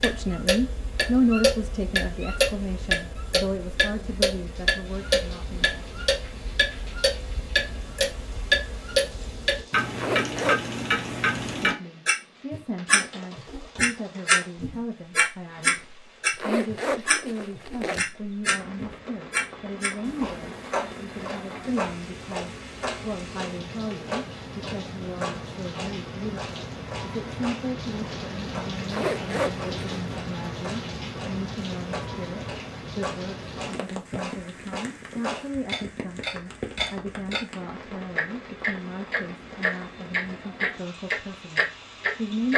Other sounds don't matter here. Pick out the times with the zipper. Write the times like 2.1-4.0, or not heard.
9.9-10.7, 16.4-18.0, 28.9-30.1.